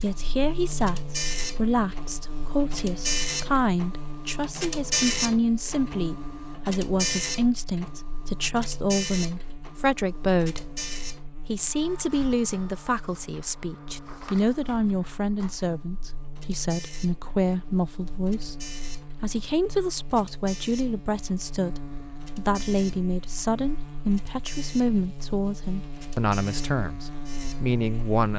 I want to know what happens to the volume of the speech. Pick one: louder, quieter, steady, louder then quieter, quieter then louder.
steady.